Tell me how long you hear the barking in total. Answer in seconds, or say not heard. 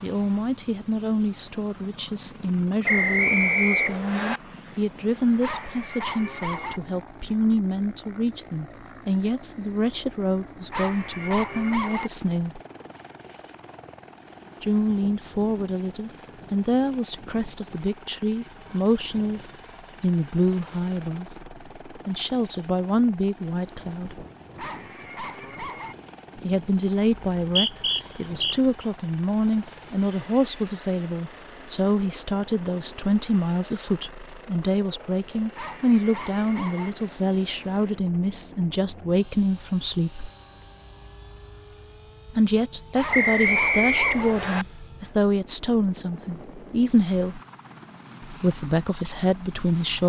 7 s.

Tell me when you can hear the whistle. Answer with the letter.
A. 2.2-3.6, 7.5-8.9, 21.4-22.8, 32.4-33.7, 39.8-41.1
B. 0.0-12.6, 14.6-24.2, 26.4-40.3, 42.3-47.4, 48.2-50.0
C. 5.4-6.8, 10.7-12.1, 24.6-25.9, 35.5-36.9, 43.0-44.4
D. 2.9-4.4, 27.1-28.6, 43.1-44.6
D.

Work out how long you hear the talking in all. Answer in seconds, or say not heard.
43 s.